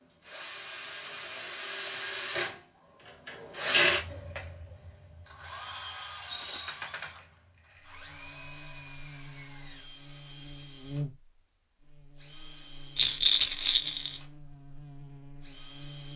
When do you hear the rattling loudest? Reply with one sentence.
The loudest moment of the rattling is at 13 seconds.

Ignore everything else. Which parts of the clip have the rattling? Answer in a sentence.
The rattling can be heard from 1.1 to 2.1 s, from 6.2 to 6.8 s and from 12.9 to 14.1 s.